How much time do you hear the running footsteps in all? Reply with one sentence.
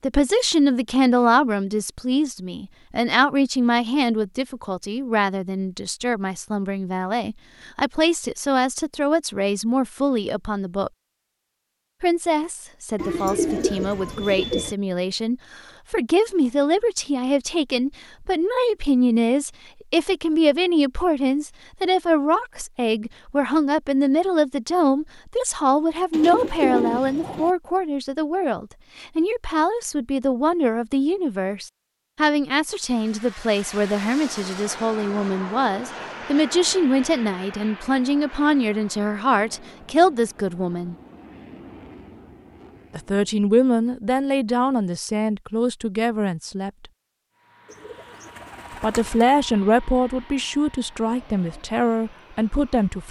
You can't hear the running footsteps here.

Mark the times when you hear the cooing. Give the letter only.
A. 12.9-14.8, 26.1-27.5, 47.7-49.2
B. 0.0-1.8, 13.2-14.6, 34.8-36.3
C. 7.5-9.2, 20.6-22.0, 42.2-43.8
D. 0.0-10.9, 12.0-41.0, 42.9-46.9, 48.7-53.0
A.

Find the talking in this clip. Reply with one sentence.
You can hear the talking from 0.0 to 10.9 s, from 12.0 to 41.0 s, from 42.9 to 46.9 s and from 48.7 to 53.0 s.